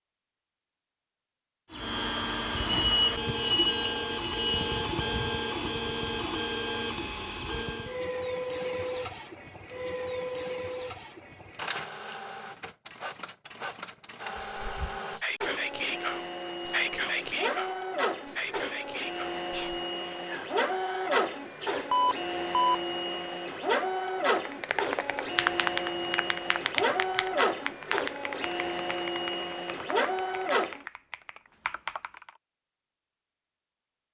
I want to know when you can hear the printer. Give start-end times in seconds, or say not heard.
1.7-30.9.